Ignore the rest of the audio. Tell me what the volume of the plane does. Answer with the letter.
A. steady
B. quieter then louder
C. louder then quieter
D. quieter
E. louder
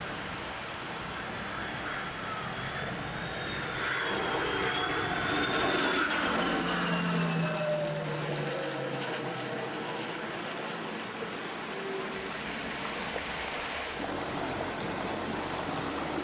C.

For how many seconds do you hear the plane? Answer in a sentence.
You can hear the plane for 13 seconds altogether.